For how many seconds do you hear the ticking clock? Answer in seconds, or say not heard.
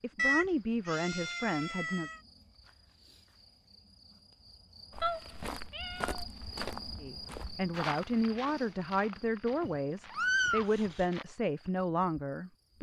not heard.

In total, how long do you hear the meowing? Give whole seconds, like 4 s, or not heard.
5 s.